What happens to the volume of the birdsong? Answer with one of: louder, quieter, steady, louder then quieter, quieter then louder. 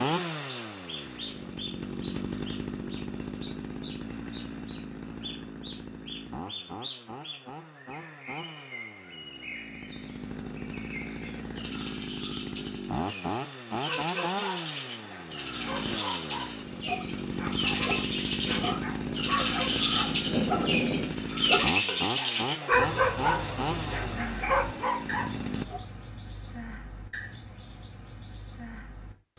louder then quieter.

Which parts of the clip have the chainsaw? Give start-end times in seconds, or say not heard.
0.0-25.6.